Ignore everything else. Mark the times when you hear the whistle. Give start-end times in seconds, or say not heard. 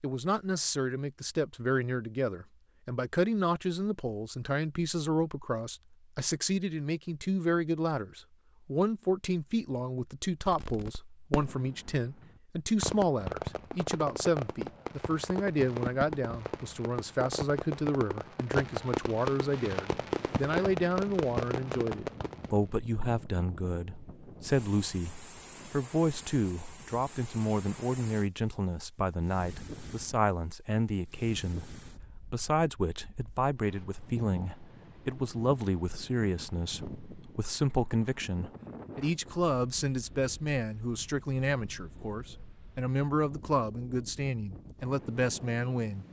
not heard.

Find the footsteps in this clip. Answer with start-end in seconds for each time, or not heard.
not heard.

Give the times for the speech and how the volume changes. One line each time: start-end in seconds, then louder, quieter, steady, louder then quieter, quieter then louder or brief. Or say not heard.
0.0-46.0 steady.